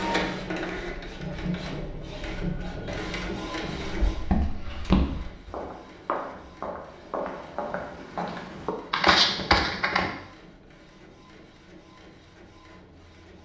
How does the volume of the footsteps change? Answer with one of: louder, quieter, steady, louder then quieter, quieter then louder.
quieter then louder.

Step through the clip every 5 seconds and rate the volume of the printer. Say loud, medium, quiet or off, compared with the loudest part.
loud, quiet, quiet.